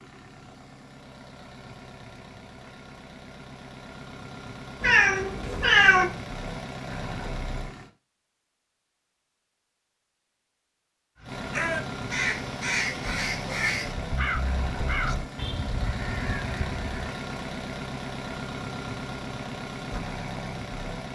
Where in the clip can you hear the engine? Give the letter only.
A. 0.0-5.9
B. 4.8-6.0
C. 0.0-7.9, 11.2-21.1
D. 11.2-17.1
C.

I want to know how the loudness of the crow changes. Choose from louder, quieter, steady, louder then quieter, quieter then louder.
quieter.